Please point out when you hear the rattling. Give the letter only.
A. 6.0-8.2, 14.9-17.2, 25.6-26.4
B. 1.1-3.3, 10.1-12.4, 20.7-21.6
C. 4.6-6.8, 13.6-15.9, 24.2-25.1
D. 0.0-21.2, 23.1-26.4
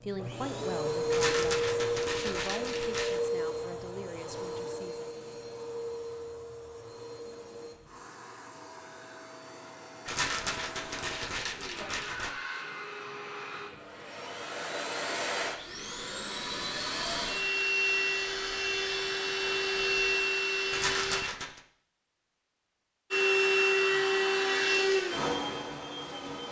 B.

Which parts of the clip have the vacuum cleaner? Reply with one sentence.
You can hear the vacuum cleaner from 0.0 to 21.2 s and from 23.1 to 26.4 s.